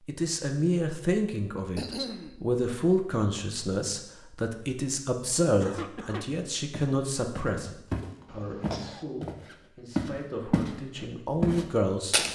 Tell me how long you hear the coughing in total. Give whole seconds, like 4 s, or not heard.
2 s.